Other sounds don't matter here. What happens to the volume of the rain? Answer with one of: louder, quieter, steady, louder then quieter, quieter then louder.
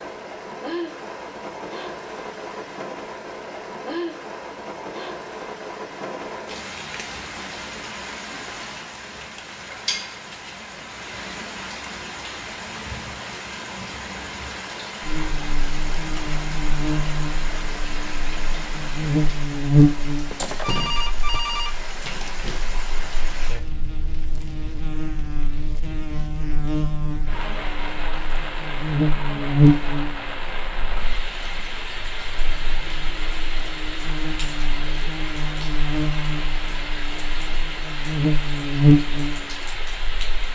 steady.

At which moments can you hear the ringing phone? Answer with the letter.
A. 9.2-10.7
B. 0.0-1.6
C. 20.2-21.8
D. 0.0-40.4
C.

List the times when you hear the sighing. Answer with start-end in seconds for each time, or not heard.
not heard.